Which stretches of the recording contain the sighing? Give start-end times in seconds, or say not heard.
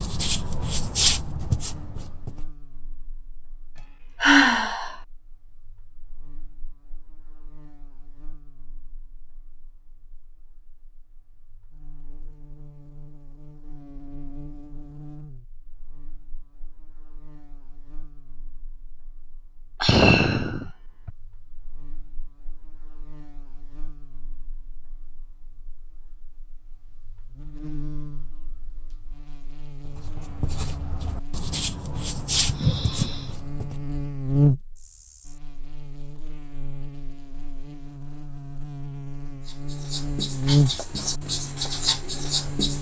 3.8-5.0, 19.8-21.1, 32.5-33.4.